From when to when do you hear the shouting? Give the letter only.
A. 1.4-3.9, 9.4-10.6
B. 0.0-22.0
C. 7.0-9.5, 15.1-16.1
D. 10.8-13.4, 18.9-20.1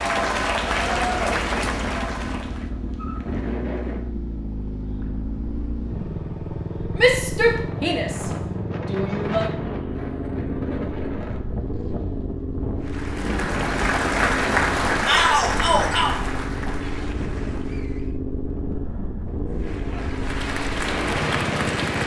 C.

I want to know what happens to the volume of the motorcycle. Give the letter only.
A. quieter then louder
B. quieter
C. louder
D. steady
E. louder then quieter
D.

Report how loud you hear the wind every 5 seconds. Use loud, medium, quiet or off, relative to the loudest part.
medium, medium, loud, medium, loud.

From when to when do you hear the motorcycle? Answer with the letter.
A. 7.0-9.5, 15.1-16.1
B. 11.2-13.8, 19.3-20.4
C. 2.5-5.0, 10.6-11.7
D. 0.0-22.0
D.